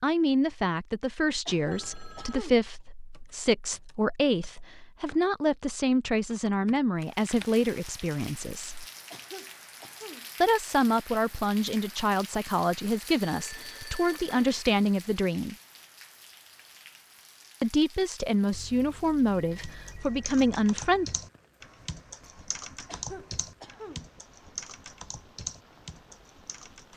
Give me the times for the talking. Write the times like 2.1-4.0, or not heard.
0.0-8.8, 10.4-15.6, 17.6-21.1.